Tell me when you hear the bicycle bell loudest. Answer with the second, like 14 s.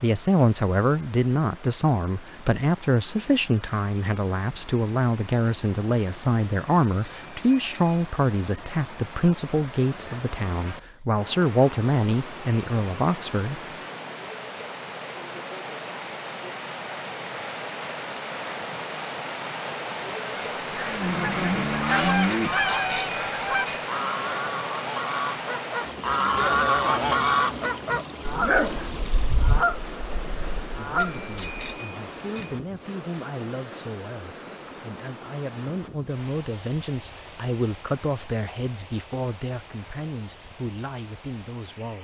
23 s.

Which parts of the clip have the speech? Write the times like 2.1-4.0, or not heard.
0.0-13.6, 30.8-41.9.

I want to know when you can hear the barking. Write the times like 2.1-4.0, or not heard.
27.4-28.9.